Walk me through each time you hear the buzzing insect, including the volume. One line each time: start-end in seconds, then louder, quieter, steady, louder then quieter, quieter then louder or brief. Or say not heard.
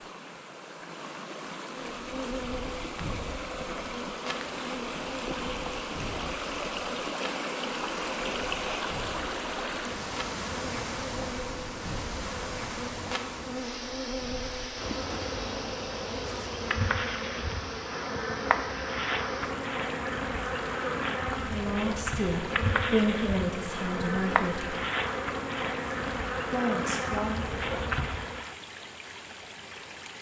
1.6-28.6 louder.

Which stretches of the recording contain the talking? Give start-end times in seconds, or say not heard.
21.4-24.8, 26.5-27.4.